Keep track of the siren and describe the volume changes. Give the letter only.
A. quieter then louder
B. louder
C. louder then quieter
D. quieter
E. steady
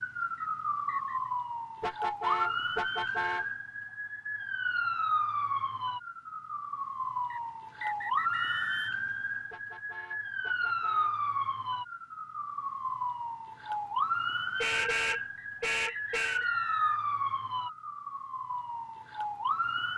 E.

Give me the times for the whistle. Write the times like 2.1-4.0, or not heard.
0.3-1.3, 7.3-9.1, 15.3-17.1.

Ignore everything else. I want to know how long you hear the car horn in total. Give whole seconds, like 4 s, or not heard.
5 s.